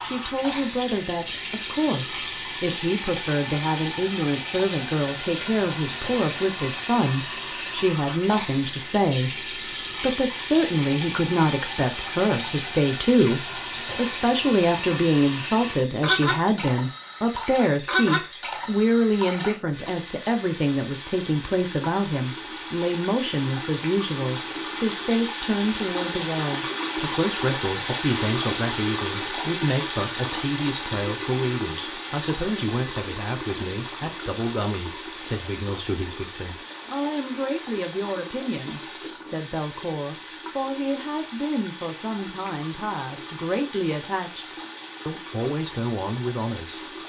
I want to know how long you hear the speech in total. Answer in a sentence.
You can hear the speech for 47 seconds altogether.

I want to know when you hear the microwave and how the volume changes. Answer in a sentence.
The microwave can't be heard in this clip.